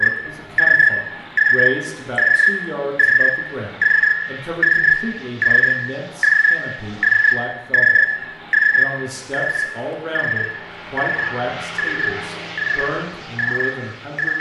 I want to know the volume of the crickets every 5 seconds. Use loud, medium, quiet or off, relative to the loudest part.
loud, loud, medium.